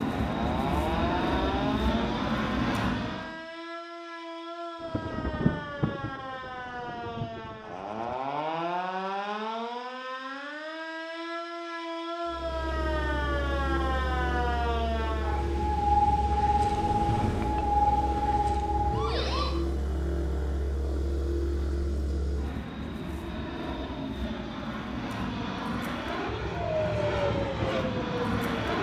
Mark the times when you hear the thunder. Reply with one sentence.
You can hear the thunder from 4.8 to 8.2 s and from 15.4 to 18.4 s.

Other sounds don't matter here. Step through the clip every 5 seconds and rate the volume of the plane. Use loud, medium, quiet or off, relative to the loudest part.
loud, off, medium, medium, medium, loud.